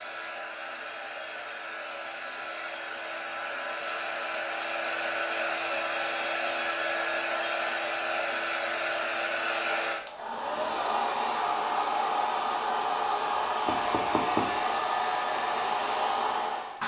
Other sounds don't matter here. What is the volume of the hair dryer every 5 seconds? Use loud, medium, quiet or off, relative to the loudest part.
medium, loud, loud, loud.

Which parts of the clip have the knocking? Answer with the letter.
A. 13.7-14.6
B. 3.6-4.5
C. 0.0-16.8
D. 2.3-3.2
A.